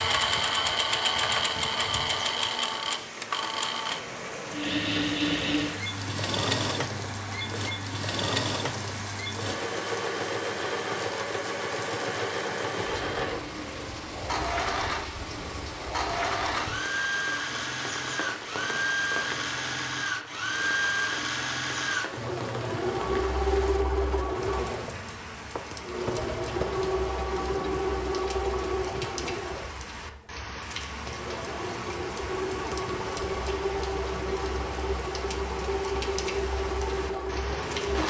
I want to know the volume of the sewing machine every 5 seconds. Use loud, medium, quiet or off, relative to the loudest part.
loud, loud, loud, loud, loud, loud, medium, loud.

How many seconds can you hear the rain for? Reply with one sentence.
The rain can be heard for 38 seconds in total.